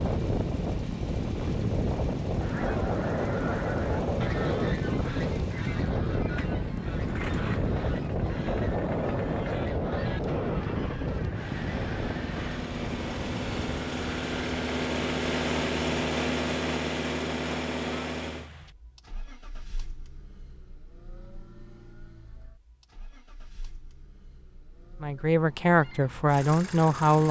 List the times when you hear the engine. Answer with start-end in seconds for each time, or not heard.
0.0-27.2.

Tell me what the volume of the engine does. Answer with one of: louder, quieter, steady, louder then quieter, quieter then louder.
louder then quieter.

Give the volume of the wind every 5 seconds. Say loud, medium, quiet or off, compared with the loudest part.
loud, loud, medium, off, off, off.